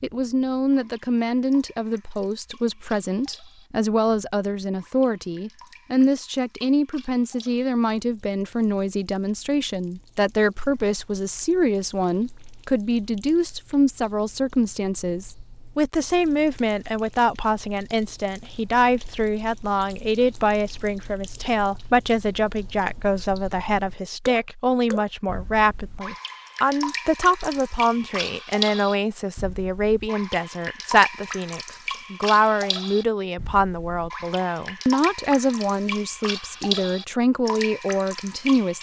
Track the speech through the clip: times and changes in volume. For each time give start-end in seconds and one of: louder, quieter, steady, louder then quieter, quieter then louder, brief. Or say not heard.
0.0-38.7 steady.